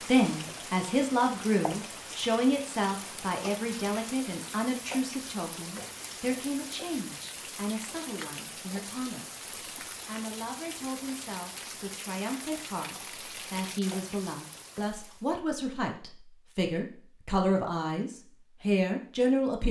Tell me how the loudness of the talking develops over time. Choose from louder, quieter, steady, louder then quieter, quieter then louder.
quieter then louder.